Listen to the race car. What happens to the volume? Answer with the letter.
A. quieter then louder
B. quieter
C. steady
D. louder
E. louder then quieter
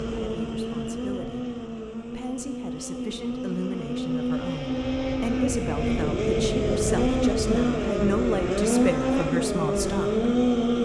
D.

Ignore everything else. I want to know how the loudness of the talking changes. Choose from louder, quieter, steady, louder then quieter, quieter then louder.
louder.